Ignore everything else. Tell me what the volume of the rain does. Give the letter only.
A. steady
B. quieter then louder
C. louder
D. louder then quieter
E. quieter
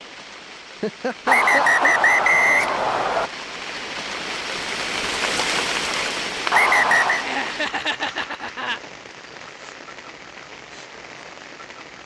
D.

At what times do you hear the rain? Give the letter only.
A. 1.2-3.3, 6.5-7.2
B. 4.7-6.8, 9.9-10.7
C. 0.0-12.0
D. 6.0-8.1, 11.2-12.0
C.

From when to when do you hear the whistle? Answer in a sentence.
You can hear the whistle from 1.2 to 3.3 s and from 6.5 to 7.2 s.